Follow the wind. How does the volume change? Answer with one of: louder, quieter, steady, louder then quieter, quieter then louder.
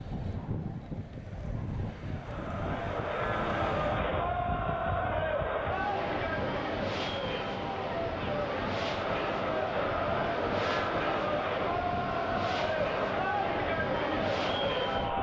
steady.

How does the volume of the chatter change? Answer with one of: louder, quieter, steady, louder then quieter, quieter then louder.
steady.